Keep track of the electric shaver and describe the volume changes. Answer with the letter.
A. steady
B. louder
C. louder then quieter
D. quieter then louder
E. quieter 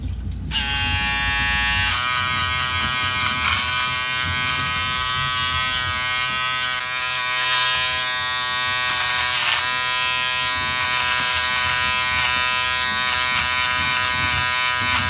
A.